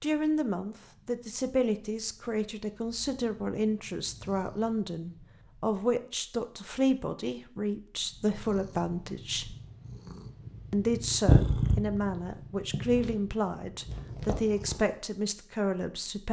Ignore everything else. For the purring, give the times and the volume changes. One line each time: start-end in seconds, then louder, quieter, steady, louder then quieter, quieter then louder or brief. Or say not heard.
0.0-5.8 louder
8.2-14.9 louder then quieter.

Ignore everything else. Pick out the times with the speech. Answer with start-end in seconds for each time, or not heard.
0.0-9.6, 10.7-16.2.